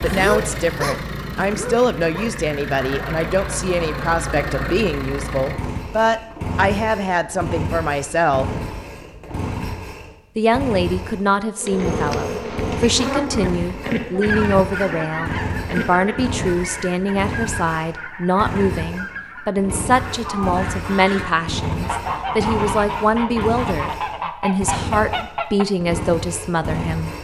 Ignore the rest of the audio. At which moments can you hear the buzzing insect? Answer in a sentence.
You can hear the buzzing insect from 11.6 to 16.4 s.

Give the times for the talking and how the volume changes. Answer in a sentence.
The talking can be heard from 0.0 to 8.5 s, at a steady volume; and from 10.3 to 27.1 s, at a steady volume.